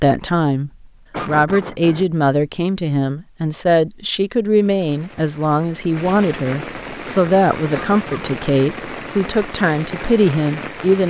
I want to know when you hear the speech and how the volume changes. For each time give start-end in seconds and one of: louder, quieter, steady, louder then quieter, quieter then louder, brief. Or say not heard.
0.0-11.0 steady.